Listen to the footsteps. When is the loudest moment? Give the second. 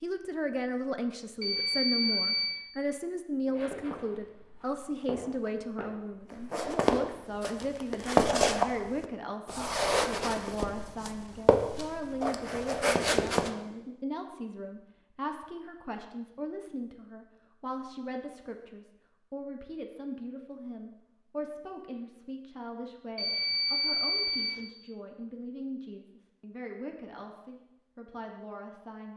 8 s.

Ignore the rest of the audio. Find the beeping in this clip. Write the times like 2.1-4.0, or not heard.
1.4-2.6, 23.1-24.6.